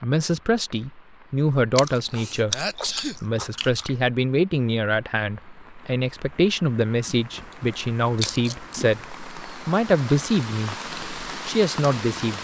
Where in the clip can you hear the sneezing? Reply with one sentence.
You can hear the sneezing from 2.5 to 3.1 s.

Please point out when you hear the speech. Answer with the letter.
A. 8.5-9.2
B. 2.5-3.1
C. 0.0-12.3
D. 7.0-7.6
C.